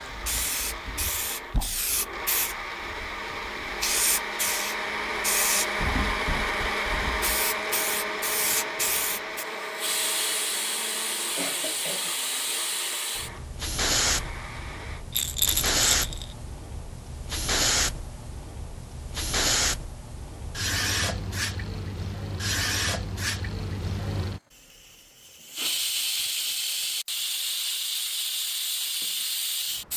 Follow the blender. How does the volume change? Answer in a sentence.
The loudness of the blender goes up, then down.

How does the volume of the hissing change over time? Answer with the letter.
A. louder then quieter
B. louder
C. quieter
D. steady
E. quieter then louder
D.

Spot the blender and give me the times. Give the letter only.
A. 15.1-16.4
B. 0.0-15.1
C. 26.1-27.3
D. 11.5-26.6
B.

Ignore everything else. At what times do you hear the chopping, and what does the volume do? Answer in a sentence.
You can't hear the chopping here.